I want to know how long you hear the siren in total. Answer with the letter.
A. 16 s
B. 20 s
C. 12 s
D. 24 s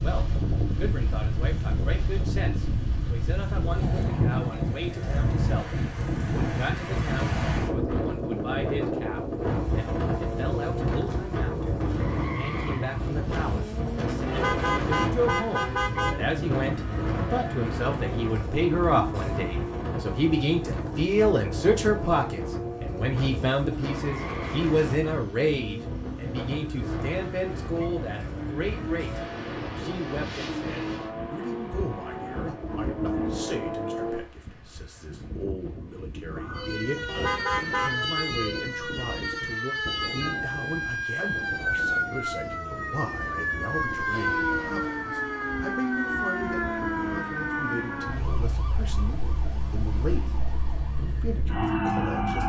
A.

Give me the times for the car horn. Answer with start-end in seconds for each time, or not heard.
14.2-16.2, 37.0-38.1.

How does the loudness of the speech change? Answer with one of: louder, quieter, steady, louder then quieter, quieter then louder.
louder then quieter.